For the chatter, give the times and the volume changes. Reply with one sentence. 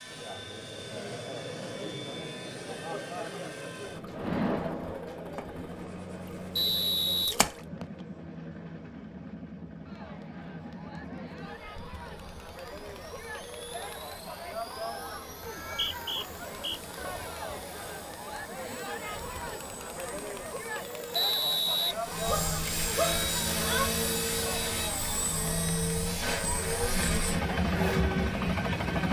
You can hear the chatter from 0.1 to 29.0 s, getting quieter then louder.